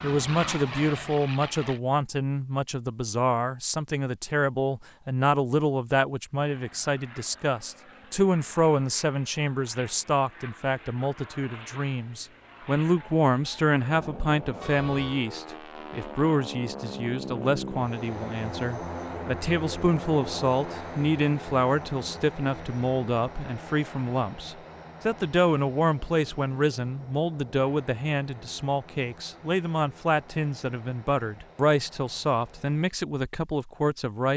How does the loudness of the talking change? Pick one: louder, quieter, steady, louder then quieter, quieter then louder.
steady.